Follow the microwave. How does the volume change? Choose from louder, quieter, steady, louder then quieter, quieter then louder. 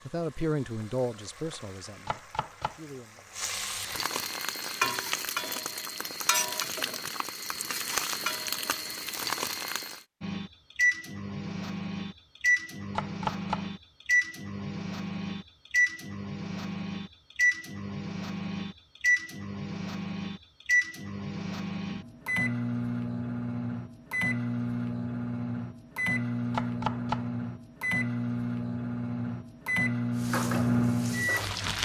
steady.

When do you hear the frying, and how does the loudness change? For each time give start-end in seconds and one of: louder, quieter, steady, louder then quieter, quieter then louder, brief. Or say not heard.
0.0-10.1 louder
30.1-31.8 brief.